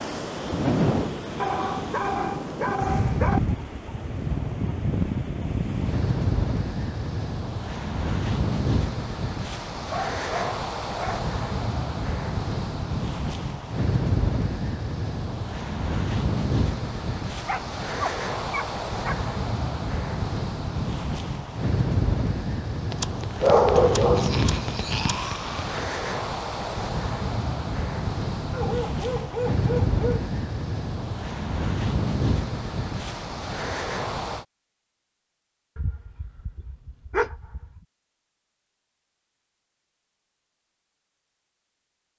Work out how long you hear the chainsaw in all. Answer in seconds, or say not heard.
not heard.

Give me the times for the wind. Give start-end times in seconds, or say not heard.
0.0-34.5.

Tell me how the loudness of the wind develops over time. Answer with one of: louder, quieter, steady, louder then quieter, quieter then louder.
steady.